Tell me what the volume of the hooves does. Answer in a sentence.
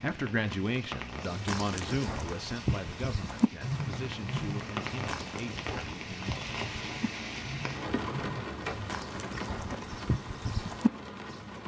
The volume of the hooves goes down, then up.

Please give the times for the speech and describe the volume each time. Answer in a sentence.
The speech can be heard from 0.0 to 6.3 s, getting quieter.